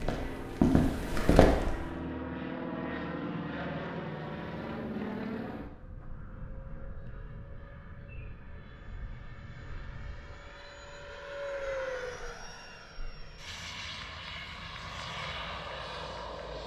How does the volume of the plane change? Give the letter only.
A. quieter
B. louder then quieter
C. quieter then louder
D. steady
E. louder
C.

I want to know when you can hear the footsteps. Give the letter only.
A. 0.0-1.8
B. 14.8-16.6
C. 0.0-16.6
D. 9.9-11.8
A.